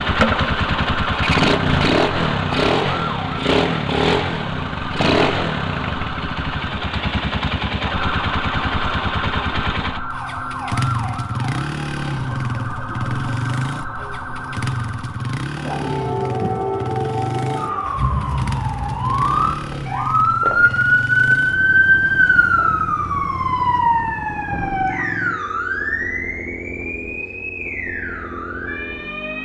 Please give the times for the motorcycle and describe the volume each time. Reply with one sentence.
The motorcycle can be heard from 0.0 to 29.4 s, getting quieter.